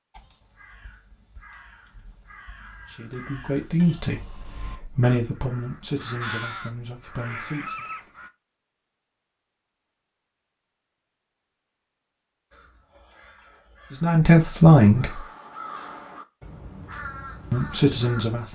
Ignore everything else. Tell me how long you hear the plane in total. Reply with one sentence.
You can't hear the plane here.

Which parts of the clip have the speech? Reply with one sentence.
You can hear the speech from 2.9 to 7.8 s, from 13.9 to 15.2 s and from 17.5 to 18.5 s.